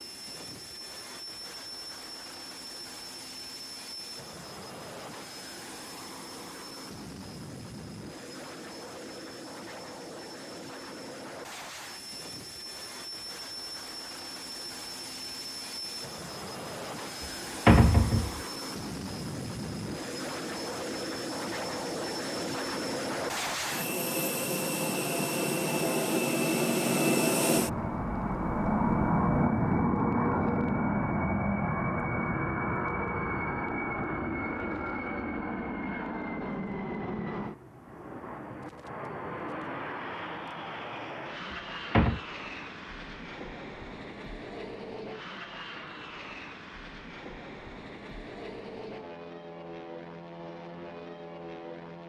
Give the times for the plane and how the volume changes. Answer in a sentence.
The plane can be heard from 0.0 to 52.0 s, getting louder then quieter.